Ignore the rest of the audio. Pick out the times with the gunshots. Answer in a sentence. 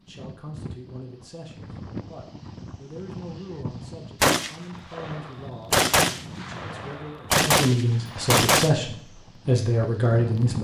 The gunshots can be heard from 4.2 to 8.7 s.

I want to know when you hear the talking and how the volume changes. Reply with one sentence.
The talking can be heard from 0.0 to 10.5 s, getting louder.